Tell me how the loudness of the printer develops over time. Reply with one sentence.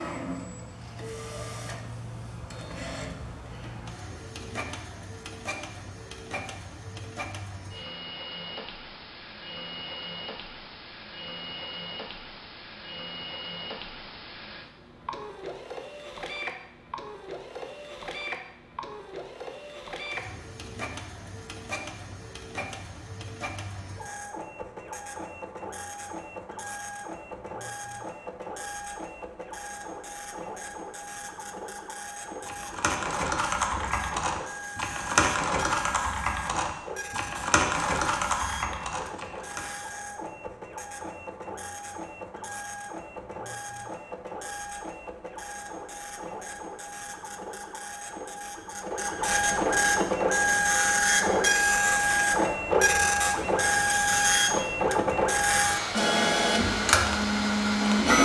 The volume of the printer goes up.